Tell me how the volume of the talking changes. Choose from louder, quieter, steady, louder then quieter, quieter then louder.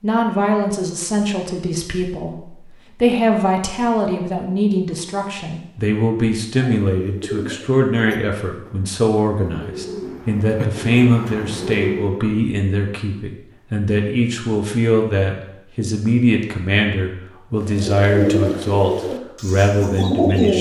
steady.